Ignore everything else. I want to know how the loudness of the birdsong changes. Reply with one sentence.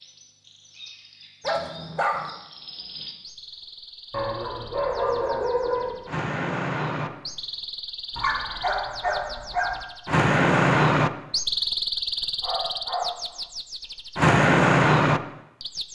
The volume of the birdsong goes up.